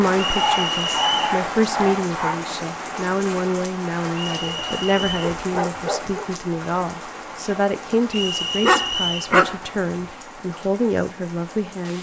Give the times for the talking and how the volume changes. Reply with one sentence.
The talking can be heard from 0.0 to 11.9 s, at a steady volume.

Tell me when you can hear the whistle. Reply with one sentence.
The whistle can be heard from 0.1 to 1.4 s, from 4.3 to 5.3 s and from 8.1 to 9.3 s.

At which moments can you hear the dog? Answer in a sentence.
The dog can be heard from 0.3 to 2.4 s, from 4.4 to 6.3 s and from 8.2 to 9.6 s.